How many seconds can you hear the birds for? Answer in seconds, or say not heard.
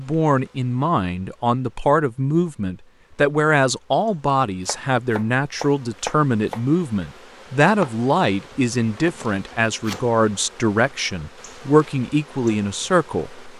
not heard.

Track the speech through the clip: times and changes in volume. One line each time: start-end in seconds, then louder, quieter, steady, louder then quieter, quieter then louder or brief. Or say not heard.
0.0-13.5 steady.